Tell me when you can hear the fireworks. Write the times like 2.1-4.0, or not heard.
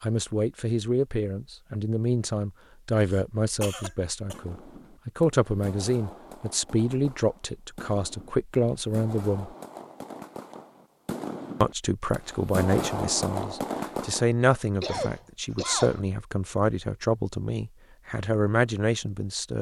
4.3-14.3.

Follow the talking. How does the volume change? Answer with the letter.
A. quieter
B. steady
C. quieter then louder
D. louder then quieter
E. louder
B.